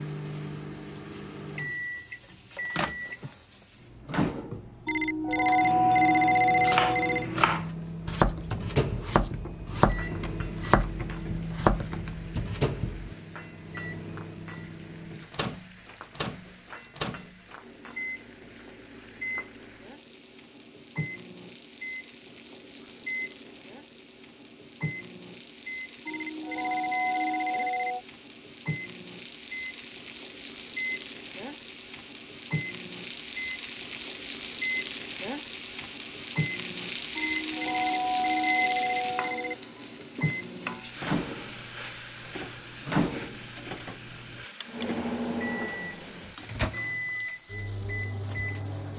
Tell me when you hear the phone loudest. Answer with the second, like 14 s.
6 s.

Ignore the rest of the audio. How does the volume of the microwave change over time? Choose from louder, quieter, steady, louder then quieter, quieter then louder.
quieter then louder.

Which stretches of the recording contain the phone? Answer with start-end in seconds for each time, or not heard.
4.8-7.2, 26.1-28.1, 37.1-39.5.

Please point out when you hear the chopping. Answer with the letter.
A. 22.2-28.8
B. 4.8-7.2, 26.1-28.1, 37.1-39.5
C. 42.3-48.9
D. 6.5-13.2
D.